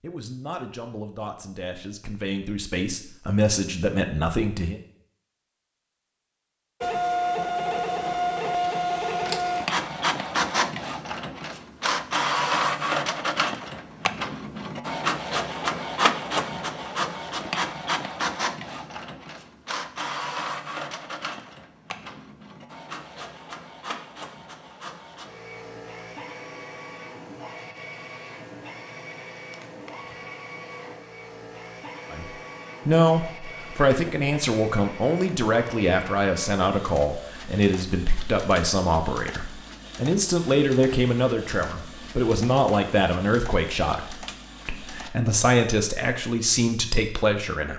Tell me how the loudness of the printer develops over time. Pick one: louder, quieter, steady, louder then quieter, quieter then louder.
quieter.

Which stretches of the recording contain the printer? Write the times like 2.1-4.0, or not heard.
6.8-45.1.